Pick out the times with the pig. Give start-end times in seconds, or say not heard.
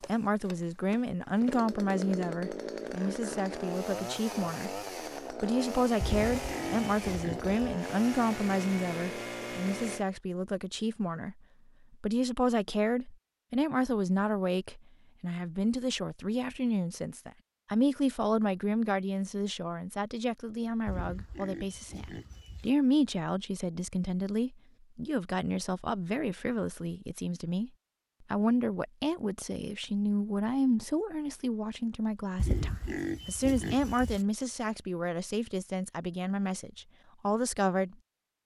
6.0-7.8, 20.9-22.7, 32.4-34.2.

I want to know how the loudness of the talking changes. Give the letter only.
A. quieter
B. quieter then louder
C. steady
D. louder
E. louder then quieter
C.